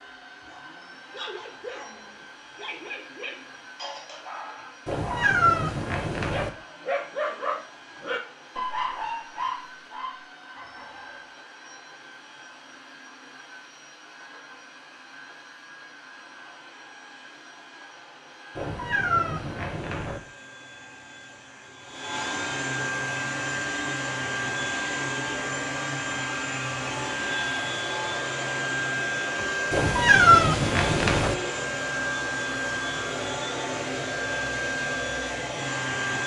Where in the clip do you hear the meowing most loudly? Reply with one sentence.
The volume of the meowing peaks at 30 seconds.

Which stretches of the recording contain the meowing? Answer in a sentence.
The meowing can be heard from 4.8 to 6.5 s, from 18.6 to 20.2 s and from 29.7 to 31.4 s.